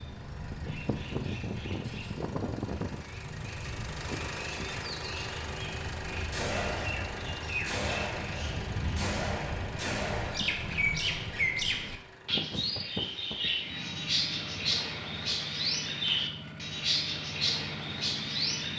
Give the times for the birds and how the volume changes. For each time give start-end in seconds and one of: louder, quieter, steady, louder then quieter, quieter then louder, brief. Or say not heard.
0.0-18.7 louder.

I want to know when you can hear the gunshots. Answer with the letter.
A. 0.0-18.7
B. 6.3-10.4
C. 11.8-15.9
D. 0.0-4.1
B.